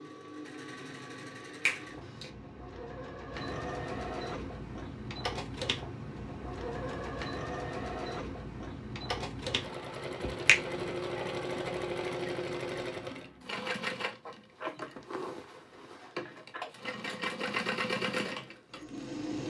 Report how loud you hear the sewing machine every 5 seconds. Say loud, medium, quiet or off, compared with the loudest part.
medium, loud, loud, loud.